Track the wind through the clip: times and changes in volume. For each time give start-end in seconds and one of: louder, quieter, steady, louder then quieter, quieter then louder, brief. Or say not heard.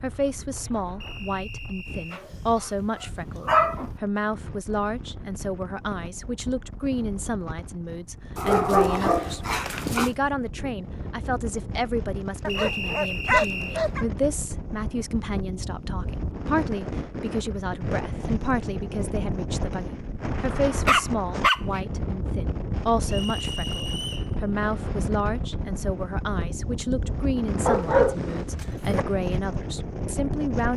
0.0-30.7 louder.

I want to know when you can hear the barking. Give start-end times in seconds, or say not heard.
2.1-3.9, 8.3-10.2, 12.4-14.1, 20.9-21.8, 27.6-29.1.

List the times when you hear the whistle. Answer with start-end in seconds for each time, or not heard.
1.0-2.2, 12.4-13.8, 23.1-24.3.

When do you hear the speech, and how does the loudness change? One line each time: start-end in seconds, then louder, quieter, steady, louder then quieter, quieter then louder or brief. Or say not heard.
0.0-30.7 steady.